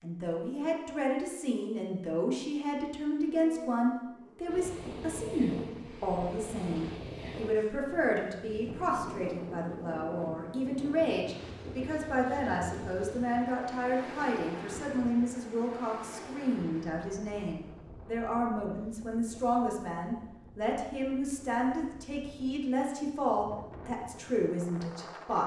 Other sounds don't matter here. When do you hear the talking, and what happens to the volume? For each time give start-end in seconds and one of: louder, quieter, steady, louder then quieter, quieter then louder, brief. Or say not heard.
0.0-25.4 steady.